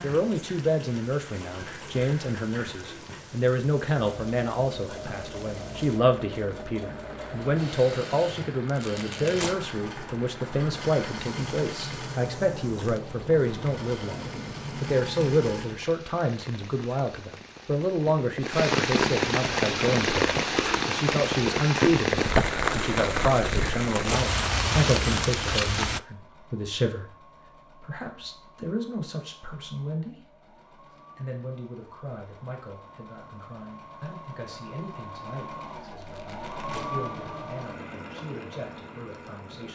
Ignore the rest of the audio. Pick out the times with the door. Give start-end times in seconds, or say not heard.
not heard.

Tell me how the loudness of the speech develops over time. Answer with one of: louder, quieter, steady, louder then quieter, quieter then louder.
quieter.